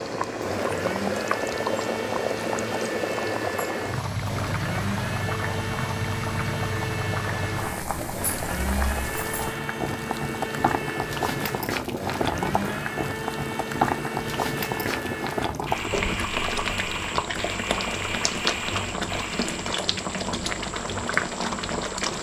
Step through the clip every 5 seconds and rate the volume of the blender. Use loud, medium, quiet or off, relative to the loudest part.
loud, loud, loud, loud, off.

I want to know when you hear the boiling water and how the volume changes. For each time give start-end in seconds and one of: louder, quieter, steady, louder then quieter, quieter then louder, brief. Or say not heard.
0.0-22.1 steady.